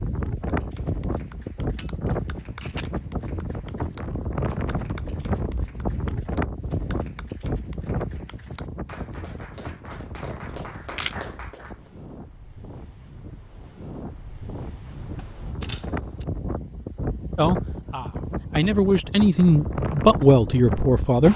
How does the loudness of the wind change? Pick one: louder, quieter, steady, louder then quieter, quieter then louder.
quieter then louder.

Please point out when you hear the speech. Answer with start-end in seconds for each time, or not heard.
17.4-21.3.